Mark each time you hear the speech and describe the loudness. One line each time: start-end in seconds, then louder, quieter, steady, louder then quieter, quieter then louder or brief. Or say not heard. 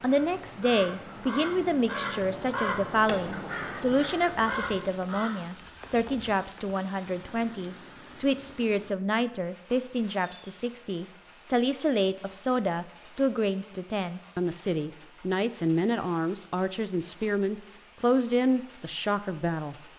0.0-19.8 steady.